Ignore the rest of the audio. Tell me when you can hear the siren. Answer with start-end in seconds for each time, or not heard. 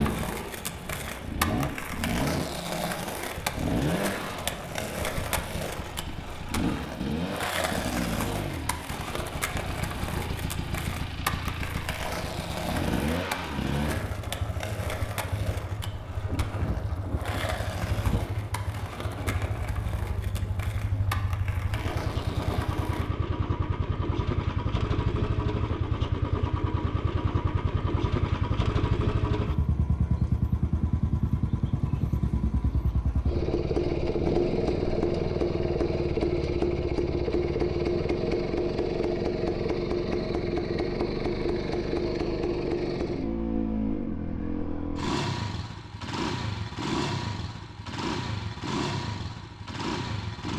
not heard.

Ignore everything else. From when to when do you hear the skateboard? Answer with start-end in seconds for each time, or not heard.
0.0-23.1.